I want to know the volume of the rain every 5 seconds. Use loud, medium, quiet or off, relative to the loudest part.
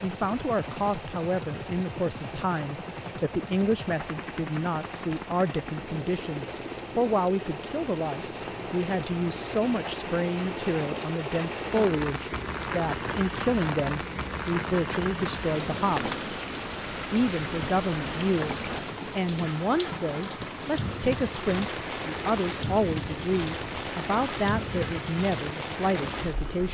medium, medium, loud, loud, loud, loud.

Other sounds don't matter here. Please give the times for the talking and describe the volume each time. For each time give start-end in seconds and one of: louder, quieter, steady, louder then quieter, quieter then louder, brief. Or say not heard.
0.0-16.4 steady
17.1-26.7 steady.